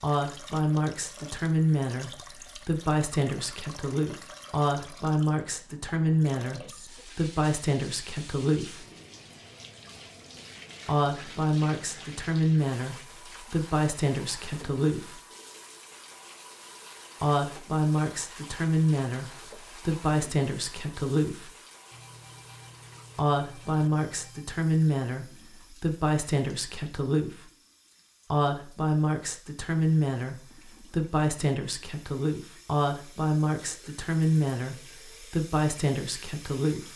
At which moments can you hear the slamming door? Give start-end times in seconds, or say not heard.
not heard.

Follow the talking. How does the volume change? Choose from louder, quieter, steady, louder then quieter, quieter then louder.
steady.